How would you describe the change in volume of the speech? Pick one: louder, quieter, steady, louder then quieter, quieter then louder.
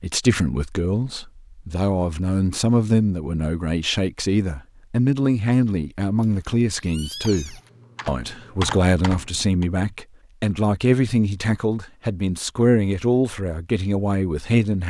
steady.